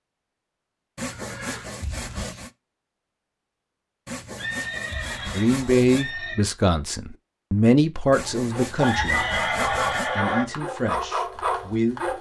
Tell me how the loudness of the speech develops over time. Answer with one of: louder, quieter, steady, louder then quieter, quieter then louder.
quieter.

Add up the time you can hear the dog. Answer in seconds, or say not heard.
4 s.